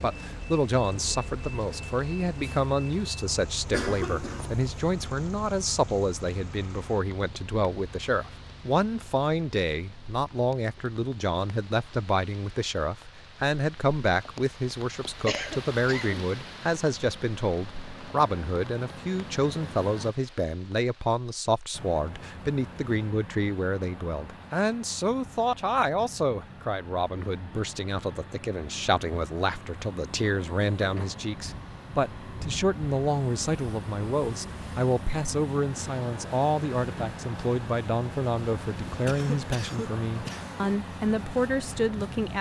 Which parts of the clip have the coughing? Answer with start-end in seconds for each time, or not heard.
3.6-4.7, 15.2-16.2, 39.0-40.6.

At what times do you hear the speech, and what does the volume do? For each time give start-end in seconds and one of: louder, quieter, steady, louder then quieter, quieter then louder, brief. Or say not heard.
0.0-42.3 steady.